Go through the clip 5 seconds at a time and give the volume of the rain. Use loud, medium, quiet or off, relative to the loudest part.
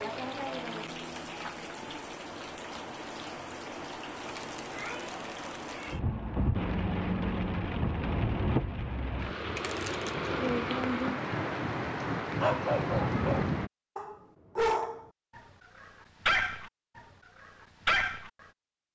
medium, loud, loud, off.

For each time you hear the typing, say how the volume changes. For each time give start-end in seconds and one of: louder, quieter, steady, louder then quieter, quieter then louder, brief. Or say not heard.
not heard.